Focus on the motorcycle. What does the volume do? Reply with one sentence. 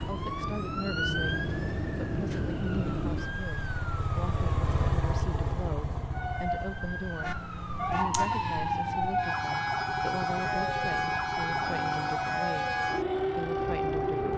The loudness of the motorcycle goes up, then down.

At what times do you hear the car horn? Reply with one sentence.
The car horn can be heard from 7.2 to 8.4 s.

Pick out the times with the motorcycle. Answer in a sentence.
You can hear the motorcycle from 0.0 to 14.3 s.